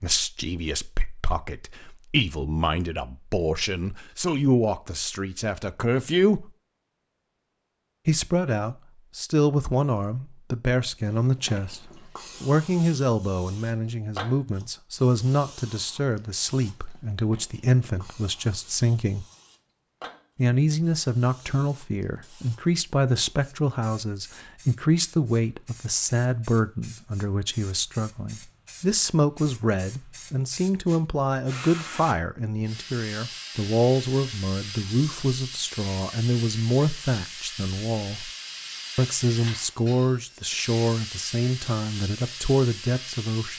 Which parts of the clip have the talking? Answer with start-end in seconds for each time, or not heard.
0.0-6.5, 8.1-19.2, 20.4-38.3, 39.0-43.5.